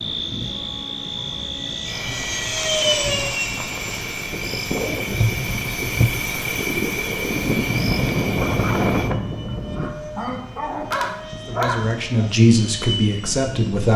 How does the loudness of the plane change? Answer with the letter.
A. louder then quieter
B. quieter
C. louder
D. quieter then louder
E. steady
B.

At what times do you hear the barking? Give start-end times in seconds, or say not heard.
9.6-12.1.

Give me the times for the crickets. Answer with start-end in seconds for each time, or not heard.
0.0-9.2.